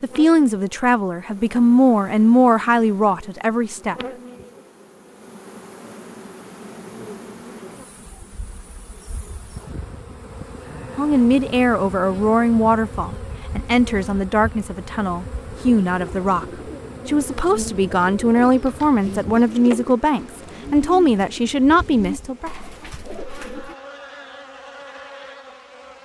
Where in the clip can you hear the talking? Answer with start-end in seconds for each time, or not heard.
0.0-4.0, 10.9-16.4, 17.1-22.5.